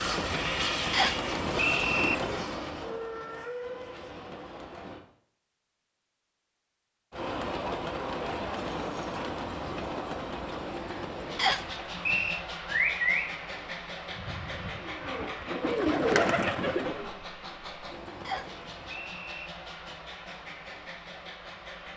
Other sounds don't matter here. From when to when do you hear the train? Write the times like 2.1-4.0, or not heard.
0.0-5.0, 7.1-21.9.